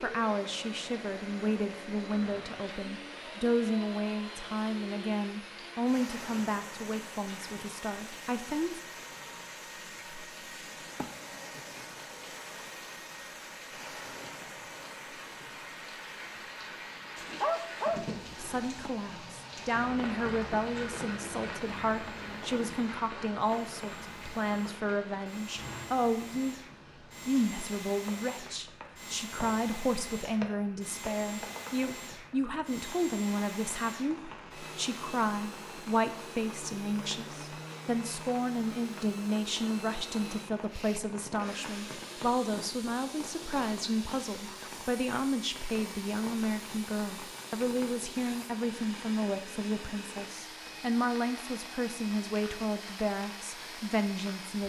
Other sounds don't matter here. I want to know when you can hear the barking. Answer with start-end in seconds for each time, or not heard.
17.1-18.9.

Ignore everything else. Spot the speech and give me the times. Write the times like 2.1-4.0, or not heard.
0.0-8.8, 18.4-26.6, 27.2-54.6.